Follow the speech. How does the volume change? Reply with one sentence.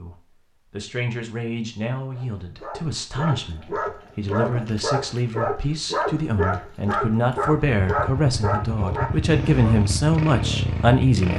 The volume of the speech goes up.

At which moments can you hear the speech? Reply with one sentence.
You can hear the speech from 0.0 to 11.3 s.